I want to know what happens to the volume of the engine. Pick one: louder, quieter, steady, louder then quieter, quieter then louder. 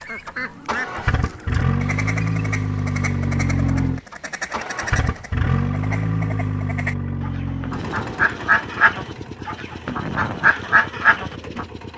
quieter.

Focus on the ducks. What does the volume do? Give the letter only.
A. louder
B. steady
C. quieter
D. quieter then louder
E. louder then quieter
A.